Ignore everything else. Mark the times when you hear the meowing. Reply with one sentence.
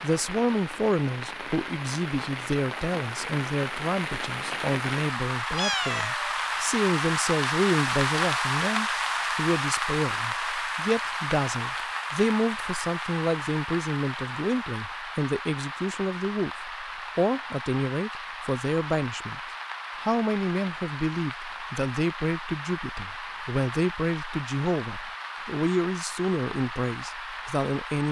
You can hear the meowing from 5.5 to 6.2 s.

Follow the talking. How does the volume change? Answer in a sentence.
The volume of the talking stays about the same.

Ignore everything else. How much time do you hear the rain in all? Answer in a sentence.
The rain can be heard for 28 seconds in total.